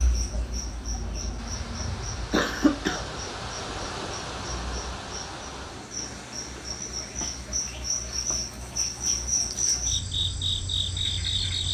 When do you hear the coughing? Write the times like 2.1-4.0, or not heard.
1.5-3.1.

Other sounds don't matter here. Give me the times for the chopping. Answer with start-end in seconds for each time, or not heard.
not heard.